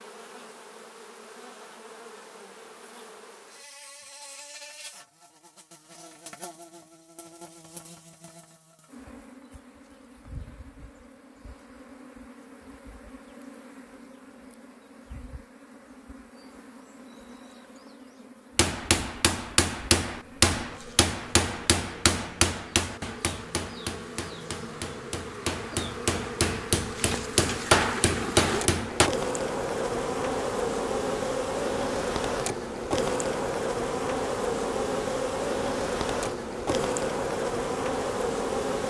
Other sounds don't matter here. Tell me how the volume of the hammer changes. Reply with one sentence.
The loudness of the hammer goes down, then up.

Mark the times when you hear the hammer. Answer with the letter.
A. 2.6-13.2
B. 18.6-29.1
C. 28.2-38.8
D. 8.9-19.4
B.